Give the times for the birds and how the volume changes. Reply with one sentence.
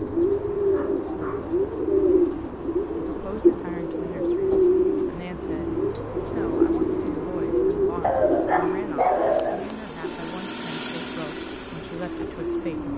You can hear the birds from 0.0 to 12.9 s, getting quieter.